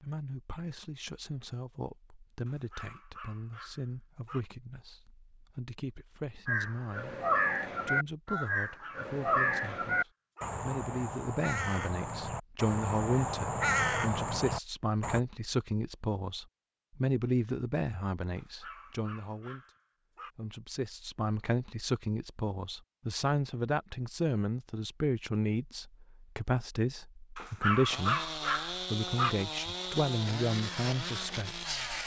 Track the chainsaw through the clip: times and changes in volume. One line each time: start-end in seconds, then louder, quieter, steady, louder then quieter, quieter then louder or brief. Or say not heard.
27.9-32.0 steady.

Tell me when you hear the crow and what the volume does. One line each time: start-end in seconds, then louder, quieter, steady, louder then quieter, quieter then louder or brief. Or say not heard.
6.5-15.2 quieter then louder.